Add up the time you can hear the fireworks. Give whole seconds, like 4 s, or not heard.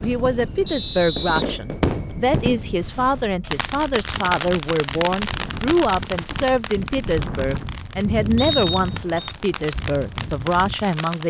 11 s.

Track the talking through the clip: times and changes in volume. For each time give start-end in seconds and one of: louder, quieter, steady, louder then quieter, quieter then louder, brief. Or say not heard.
0.0-11.2 steady.